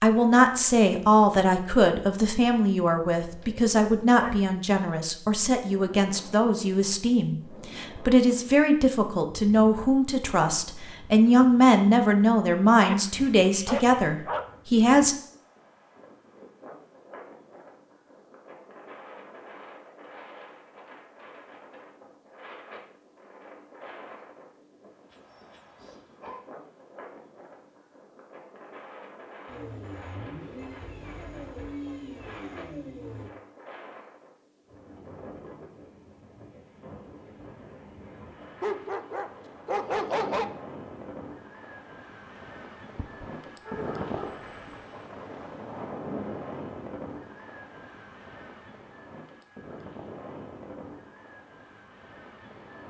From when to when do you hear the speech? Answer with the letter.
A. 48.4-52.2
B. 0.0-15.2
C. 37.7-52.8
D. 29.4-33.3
B.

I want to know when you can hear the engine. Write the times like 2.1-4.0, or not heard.
29.4-33.3.